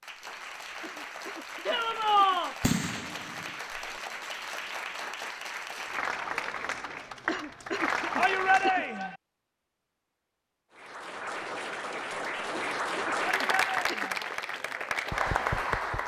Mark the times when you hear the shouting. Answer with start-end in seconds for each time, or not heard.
1.6-2.5, 8.2-9.2, 13.3-14.2.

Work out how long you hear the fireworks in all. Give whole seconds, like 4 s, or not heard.
2 s.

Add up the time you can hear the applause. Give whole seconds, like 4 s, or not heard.
14 s.